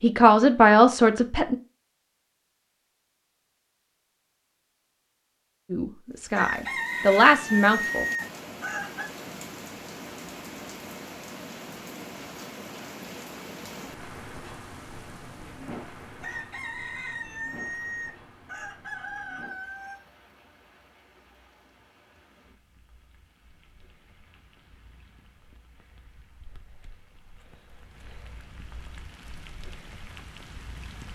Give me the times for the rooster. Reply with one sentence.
The rooster can be heard from 6.3 to 9.1 s and from 16.2 to 20.0 s.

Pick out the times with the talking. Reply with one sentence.
You can hear the talking from 0.0 to 1.6 s and from 5.7 to 8.1 s.